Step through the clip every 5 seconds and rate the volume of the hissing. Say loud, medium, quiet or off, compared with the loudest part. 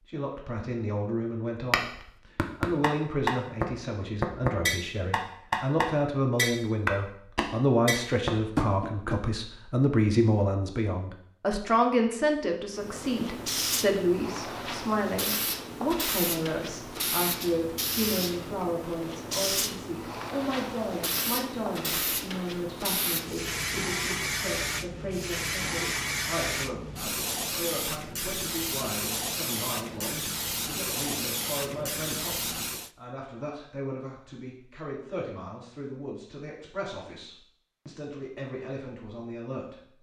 off, off, loud, loud, loud, loud, loud, off.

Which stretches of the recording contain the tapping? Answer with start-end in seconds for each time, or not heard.
1.7-9.2.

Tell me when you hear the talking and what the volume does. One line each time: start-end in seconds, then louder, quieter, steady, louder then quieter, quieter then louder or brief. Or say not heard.
0.1-1.9 brief
2.6-39.8 quieter.